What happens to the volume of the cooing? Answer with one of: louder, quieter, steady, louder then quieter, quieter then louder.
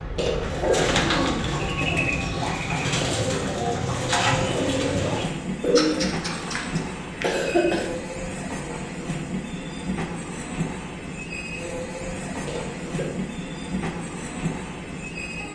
steady.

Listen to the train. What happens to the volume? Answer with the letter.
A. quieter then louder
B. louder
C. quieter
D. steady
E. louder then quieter
D.